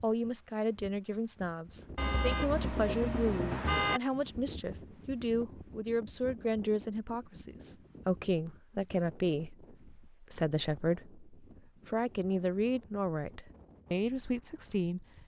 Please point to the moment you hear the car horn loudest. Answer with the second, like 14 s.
4 s.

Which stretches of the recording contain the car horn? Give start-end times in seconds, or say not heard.
1.9-4.0.